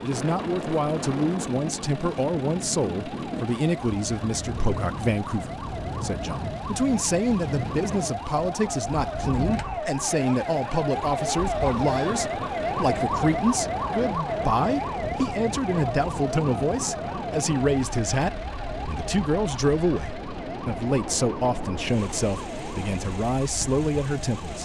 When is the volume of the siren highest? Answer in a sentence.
The volume of the siren peaks at 13 seconds.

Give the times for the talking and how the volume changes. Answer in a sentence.
You can hear the talking from 0.0 to 24.6 s, at a steady volume.